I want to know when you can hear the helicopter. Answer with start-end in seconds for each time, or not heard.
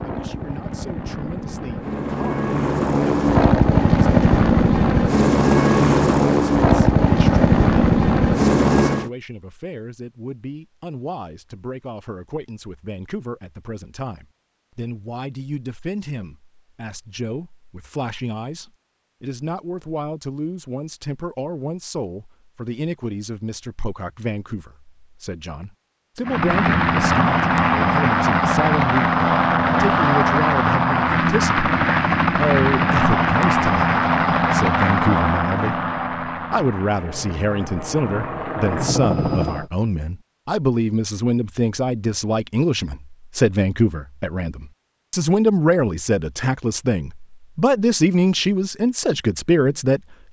0.0-9.1, 26.2-39.6.